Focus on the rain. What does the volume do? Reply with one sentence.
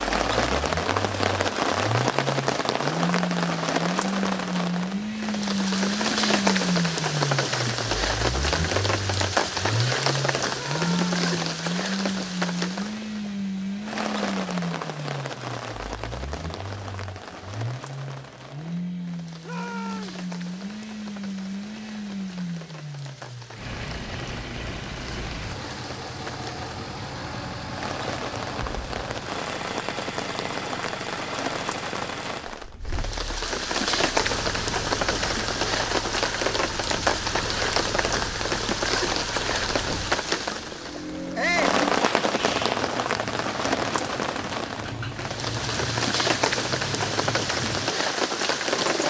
The volume of the rain goes down, then up.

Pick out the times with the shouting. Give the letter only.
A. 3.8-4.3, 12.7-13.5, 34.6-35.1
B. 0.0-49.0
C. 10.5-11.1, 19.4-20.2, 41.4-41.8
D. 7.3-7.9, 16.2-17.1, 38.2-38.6
C.